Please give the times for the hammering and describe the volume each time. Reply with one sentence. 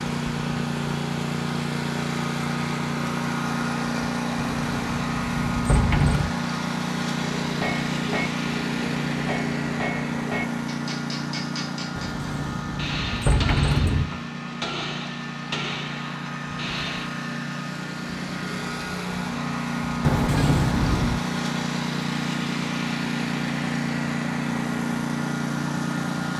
The hammering can be heard from 7.2 to 17.1 s, at a steady volume.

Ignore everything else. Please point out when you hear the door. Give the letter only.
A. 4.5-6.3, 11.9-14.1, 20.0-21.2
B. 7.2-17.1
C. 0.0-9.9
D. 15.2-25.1
A.